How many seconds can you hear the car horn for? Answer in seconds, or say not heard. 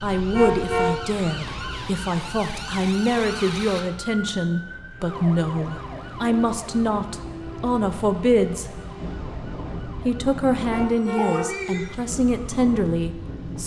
2 s.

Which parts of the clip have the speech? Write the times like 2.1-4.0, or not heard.
0.0-8.7, 10.1-13.6.